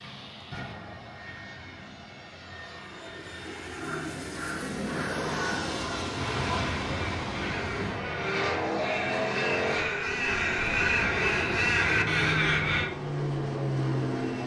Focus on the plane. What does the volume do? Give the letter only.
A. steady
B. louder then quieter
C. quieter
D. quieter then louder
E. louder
E.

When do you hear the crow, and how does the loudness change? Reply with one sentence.
The crow can be heard from 3.8 to 12.9 s, getting louder.